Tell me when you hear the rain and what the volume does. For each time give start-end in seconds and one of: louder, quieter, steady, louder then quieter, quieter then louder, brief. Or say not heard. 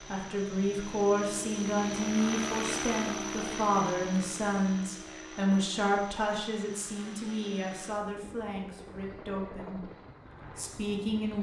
not heard.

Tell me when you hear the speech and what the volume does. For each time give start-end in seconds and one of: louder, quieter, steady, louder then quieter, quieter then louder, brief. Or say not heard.
0.1-9.8 quieter
10.6-11.3 brief.